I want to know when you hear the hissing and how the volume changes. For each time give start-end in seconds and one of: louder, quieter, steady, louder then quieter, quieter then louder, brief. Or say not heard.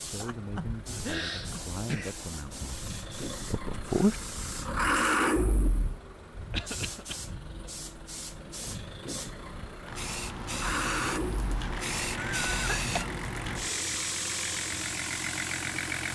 0.0-16.1 louder.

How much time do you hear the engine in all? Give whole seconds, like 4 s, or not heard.
16 s.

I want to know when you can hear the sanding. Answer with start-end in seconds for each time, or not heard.
not heard.